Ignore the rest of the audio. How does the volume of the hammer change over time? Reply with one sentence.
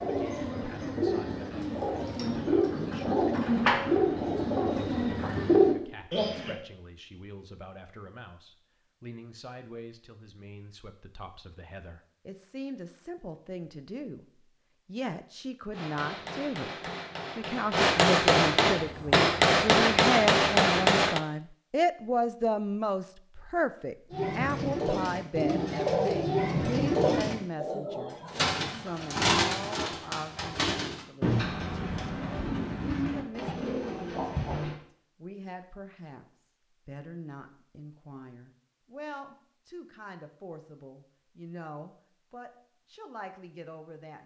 The loudness of the hammer goes up.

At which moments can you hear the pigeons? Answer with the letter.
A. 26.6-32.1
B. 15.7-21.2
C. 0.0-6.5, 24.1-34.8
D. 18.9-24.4
C.